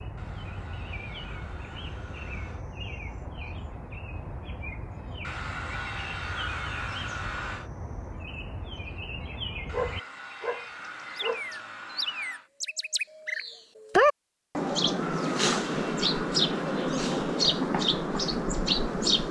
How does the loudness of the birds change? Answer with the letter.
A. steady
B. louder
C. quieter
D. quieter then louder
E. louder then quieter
B.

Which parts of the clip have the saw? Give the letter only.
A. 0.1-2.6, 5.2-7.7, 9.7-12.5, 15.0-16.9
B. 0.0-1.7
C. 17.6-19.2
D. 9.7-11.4
A.